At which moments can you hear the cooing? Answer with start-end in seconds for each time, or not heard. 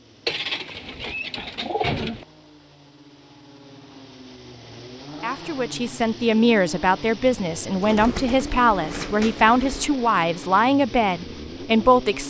0.2-2.2, 7.8-9.9.